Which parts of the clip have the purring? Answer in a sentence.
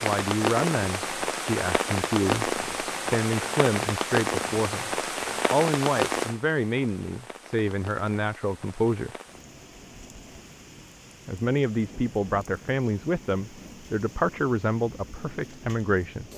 You can't hear the purring here.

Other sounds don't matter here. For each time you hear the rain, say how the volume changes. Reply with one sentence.
You can hear the rain from 0.0 to 16.3 s, getting quieter.